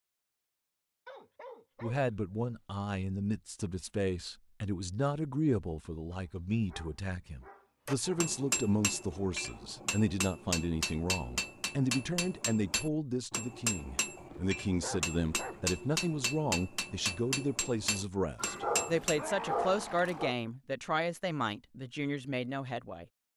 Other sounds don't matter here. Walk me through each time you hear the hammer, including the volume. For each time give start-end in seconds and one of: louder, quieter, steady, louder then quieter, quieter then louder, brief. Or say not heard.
7.8-19.2 steady.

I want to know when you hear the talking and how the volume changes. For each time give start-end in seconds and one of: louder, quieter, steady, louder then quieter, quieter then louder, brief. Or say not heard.
1.8-23.1 steady.